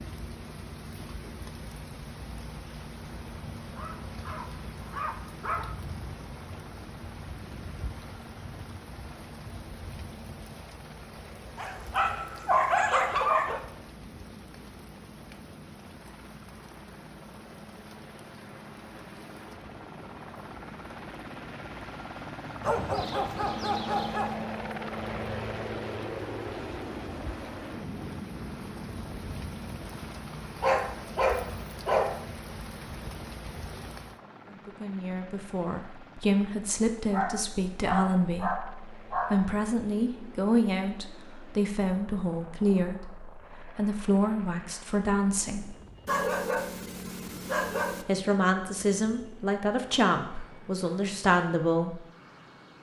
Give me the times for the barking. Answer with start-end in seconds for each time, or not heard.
3.8-5.8, 11.6-13.7, 22.6-24.4, 30.6-32.2, 37.1-39.5, 46.0-48.0.